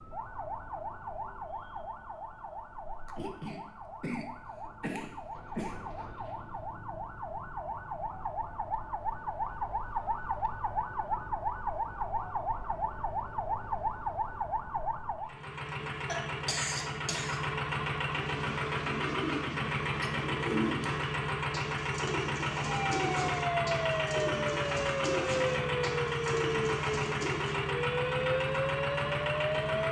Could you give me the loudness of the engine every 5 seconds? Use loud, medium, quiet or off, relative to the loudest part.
off, off, off, loud, loud, loud.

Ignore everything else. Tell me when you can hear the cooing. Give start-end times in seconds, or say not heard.
18.0-27.6.